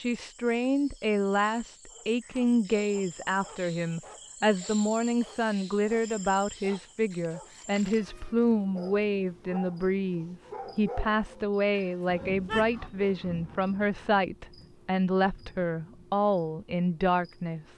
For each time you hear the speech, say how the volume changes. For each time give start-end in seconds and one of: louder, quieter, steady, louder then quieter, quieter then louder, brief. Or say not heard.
0.0-17.6 steady.